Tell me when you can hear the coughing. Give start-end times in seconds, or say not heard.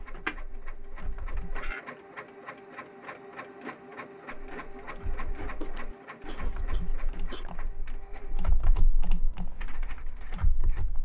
5.6-7.5.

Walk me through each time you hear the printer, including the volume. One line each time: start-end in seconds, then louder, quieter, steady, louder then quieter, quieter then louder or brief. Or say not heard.
0.0-10.9 quieter.